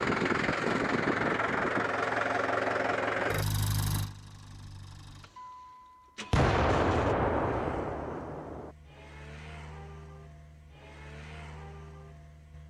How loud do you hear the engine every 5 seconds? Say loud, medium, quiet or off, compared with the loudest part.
loud, quiet, quiet.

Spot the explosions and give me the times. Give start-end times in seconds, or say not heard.
6.3-8.7.